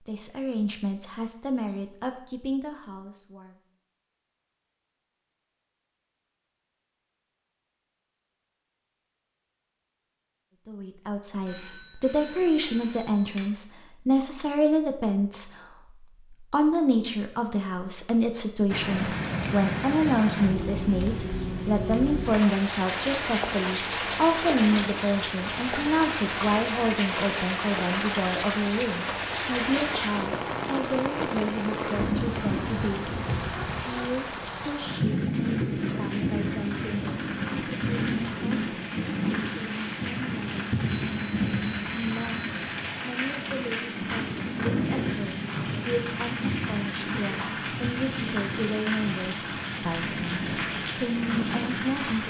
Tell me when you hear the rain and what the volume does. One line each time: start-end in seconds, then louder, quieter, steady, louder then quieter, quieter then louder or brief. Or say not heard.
18.6-52.2 steady.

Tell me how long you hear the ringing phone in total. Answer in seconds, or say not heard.
4 s.